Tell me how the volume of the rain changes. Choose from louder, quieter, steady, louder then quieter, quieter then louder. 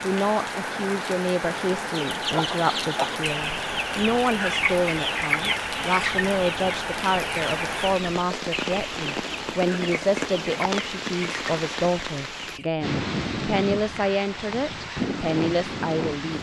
steady.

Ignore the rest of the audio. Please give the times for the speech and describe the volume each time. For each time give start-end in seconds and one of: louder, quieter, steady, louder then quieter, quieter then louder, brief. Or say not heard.
0.0-16.3 steady.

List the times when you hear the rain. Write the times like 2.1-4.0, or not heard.
0.0-16.3.